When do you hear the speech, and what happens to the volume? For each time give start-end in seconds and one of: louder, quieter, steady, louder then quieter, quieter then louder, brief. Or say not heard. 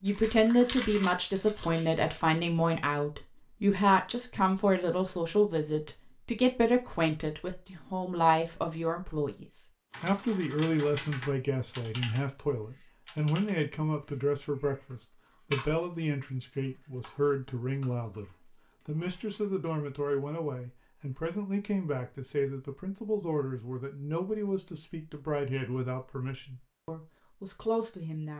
0.0-28.3 quieter.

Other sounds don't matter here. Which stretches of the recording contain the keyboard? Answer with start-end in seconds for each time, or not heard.
9.9-19.4.